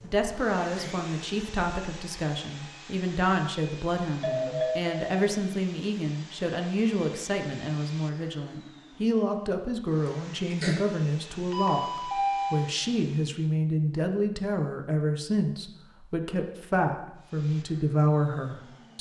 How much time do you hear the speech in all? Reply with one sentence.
The speech can be heard for 19 seconds in total.